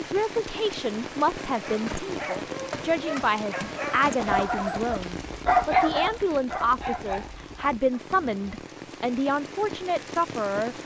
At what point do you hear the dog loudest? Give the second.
6 s.